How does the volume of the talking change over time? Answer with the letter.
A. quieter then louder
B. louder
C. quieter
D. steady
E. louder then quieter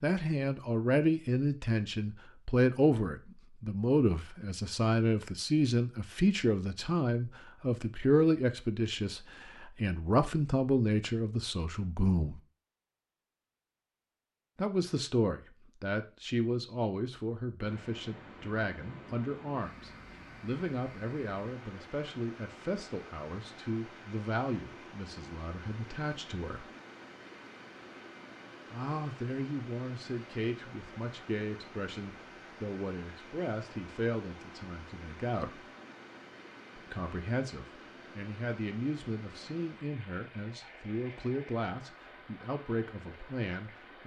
C.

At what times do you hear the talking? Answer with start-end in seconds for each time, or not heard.
0.0-12.4, 14.6-26.7, 28.7-35.6, 36.8-44.0.